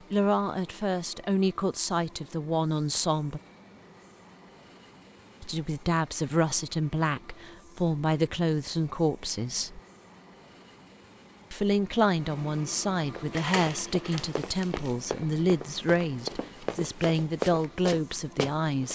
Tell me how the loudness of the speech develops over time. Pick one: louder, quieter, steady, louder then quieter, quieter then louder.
steady.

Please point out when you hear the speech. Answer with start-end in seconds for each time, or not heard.
0.1-3.4, 5.4-9.8, 11.5-18.9.